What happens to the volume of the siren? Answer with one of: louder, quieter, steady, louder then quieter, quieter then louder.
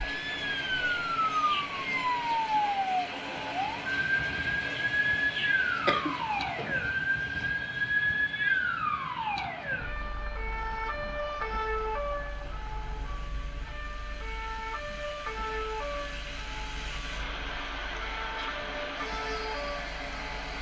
quieter.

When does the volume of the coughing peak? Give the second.
6 s.